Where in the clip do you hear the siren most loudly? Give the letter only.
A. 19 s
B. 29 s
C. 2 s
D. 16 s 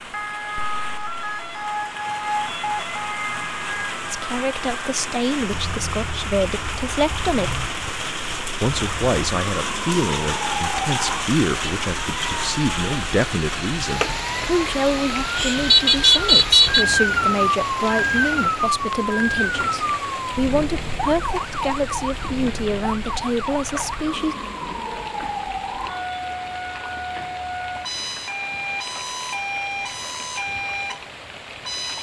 D.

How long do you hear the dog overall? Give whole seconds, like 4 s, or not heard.
not heard.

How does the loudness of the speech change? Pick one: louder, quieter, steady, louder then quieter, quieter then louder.
steady.